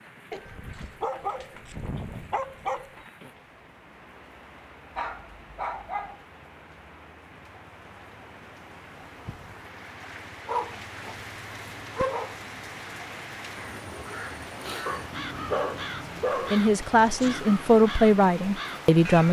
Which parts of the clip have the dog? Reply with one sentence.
You can hear the dog from 0.3 to 2.9 s, from 5.0 to 6.2 s, from 10.4 to 11.2 s, from 11.9 to 12.3 s and from 14.8 to 17.4 s.